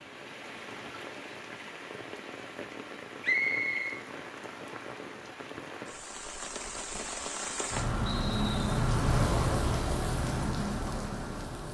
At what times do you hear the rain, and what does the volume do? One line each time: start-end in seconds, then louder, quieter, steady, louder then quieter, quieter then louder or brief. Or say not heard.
0.0-11.6 louder.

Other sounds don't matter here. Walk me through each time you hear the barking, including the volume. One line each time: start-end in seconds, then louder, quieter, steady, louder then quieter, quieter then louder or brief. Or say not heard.
not heard.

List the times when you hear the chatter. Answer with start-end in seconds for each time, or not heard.
not heard.